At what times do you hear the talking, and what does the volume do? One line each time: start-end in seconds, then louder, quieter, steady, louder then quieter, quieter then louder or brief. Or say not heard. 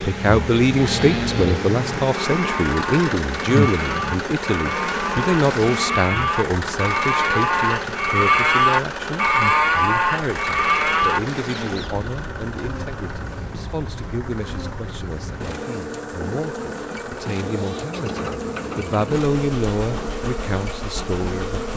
0.0-21.7 quieter then louder.